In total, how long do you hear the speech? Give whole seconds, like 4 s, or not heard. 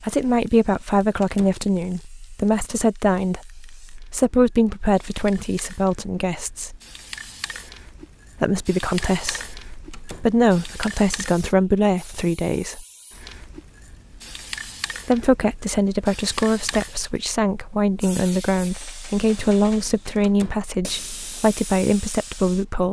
19 s.